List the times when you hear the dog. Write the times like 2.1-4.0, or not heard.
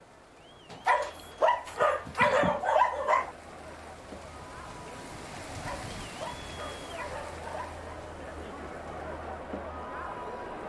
0.7-3.3, 5.5-7.8.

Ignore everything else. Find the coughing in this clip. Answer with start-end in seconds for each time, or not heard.
1.1-2.6.